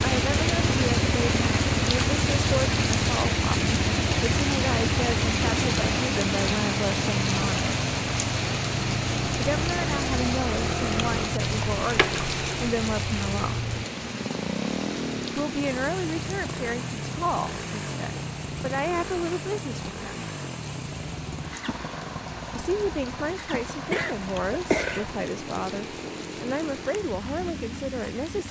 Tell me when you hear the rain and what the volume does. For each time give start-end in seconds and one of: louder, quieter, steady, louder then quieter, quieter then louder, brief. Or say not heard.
0.0-28.4 quieter.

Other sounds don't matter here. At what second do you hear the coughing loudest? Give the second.
25 s.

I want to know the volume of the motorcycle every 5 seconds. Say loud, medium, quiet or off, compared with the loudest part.
loud, loud, loud, loud, medium, medium.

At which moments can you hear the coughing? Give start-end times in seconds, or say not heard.
11.6-12.6, 23.9-25.1.